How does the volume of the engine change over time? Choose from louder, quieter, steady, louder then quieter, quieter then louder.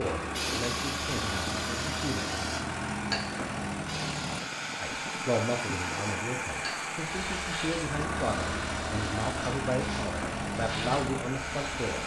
steady.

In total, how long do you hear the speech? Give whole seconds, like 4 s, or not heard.
10 s.